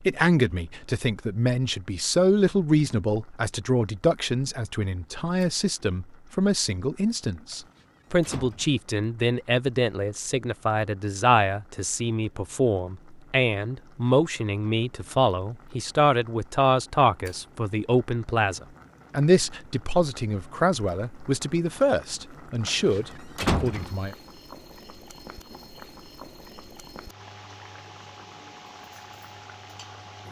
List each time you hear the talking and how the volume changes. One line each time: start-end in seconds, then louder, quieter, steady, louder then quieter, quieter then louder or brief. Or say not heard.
0.0-24.1 steady.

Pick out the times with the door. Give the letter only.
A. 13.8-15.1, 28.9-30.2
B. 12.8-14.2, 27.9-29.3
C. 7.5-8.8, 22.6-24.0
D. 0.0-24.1
C.